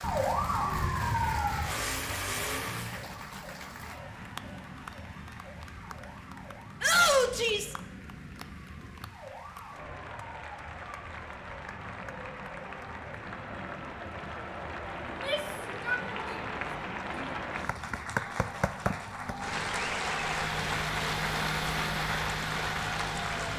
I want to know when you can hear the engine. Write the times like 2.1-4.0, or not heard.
0.2-3.1, 20.1-23.5.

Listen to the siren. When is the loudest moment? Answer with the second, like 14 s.
1 s.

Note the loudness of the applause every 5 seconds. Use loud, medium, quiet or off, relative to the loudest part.
medium, quiet, medium, loud, loud.